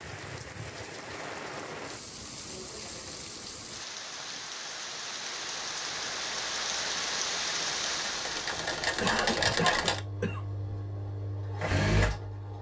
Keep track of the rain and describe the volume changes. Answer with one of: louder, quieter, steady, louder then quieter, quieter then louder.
louder.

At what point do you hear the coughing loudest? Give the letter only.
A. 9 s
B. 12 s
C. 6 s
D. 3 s
A.